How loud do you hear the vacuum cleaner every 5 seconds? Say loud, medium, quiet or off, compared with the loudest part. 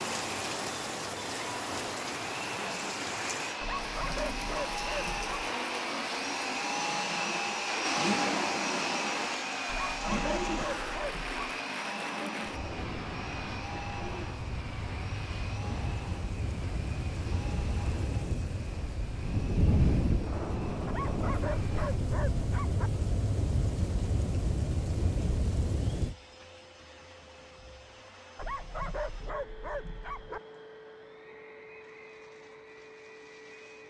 medium, loud, medium, quiet, quiet, quiet, quiet.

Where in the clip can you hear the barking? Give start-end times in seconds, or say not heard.
3.6-5.5, 9.7-11.4, 20.9-22.9, 28.4-30.4.